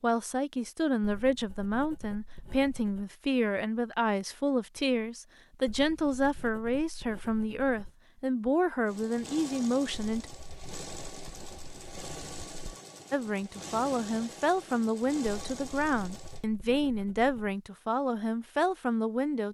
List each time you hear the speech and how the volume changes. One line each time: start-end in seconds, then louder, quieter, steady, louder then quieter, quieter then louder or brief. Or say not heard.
0.0-10.3 steady
13.1-19.4 steady.